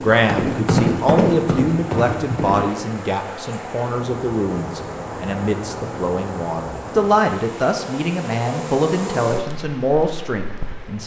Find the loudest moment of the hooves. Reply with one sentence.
The volume of the hooves peaks at 1 second.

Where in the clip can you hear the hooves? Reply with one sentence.
You can hear the hooves from 0.0 to 2.6 s.